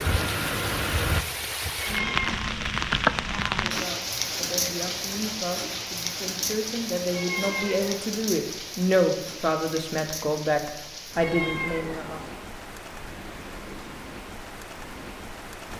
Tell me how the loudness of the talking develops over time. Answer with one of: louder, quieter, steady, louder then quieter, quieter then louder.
louder.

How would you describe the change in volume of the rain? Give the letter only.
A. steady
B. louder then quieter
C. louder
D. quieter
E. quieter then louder
D.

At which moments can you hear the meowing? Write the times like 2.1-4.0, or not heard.
1.8-2.4, 7.1-8.0, 11.2-12.4.